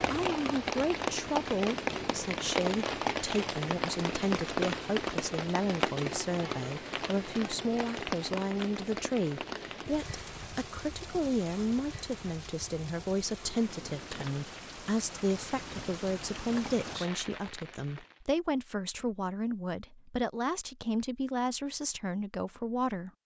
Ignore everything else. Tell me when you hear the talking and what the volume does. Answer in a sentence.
The talking can be heard from 0.1 to 23.1 s, at a steady volume.